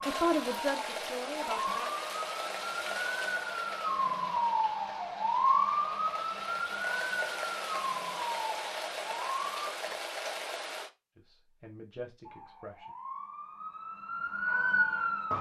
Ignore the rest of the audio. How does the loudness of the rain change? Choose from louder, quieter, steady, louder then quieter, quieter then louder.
quieter then louder.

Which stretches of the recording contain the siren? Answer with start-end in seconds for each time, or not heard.
0.0-9.8, 12.2-15.3.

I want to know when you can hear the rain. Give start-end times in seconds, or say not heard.
0.0-10.9.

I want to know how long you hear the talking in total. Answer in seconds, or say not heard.
4 s.